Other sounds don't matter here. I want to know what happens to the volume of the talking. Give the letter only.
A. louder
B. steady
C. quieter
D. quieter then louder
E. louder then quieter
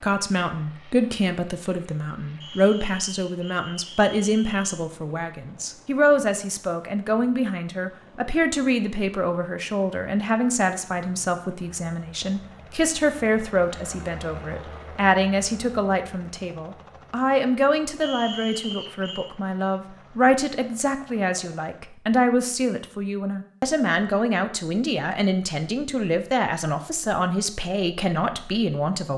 B.